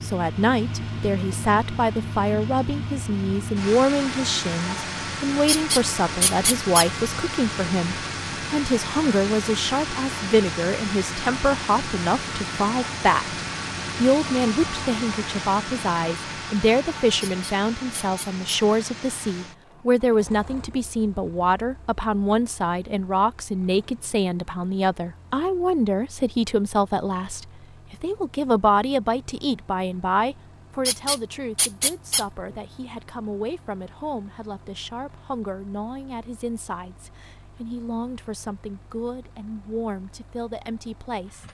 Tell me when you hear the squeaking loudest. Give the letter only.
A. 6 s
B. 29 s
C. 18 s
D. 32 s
A.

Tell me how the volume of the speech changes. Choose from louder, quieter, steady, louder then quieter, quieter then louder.
quieter.